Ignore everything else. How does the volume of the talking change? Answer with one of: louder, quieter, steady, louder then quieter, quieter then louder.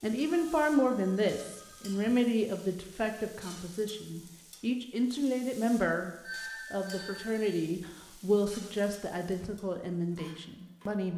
quieter.